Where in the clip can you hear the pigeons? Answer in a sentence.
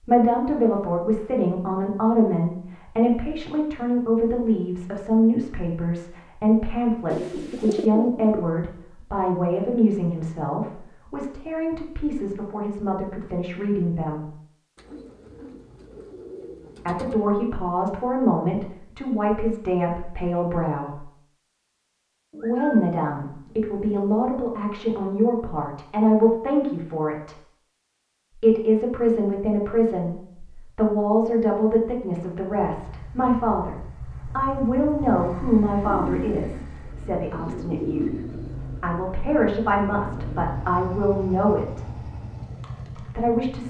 You can hear the pigeons from 7.1 to 8.4 s, from 14.8 to 17.1 s, from 22.3 to 24.1 s and from 35.8 to 38.8 s.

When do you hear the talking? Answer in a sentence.
The talking can be heard from 0.1 to 14.3 s, from 16.9 to 21.1 s, from 22.4 to 27.4 s, from 28.4 to 42.0 s and from 43.0 to 43.6 s.